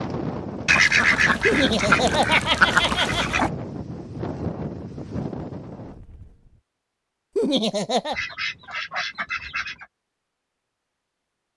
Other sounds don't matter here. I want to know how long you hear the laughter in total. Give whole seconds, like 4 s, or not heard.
3 s.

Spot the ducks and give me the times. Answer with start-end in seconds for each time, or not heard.
0.7-3.5, 8.1-9.8.